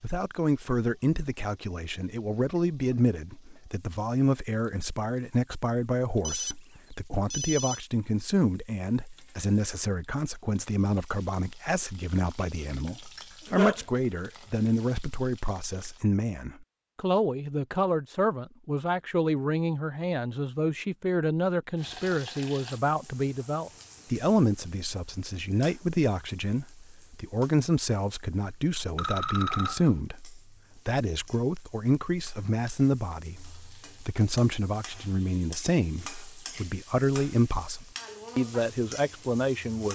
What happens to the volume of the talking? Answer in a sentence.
The volume of the talking stays about the same.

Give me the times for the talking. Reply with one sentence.
You can hear the talking from 0.0 to 39.9 s.